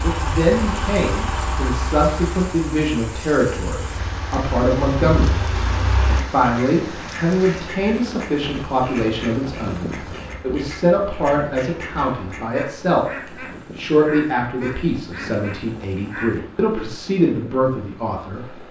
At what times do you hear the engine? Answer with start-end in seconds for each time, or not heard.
0.0-6.2.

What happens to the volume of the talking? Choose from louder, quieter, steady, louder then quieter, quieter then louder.
steady.